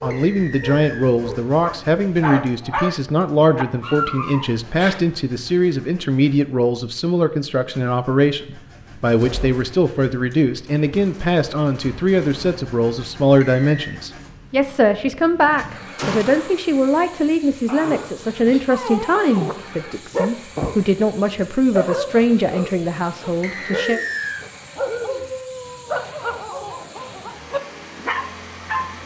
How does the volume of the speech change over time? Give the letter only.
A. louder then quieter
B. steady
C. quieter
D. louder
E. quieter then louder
B.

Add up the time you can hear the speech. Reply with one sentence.
The speech can be heard for 24 seconds in total.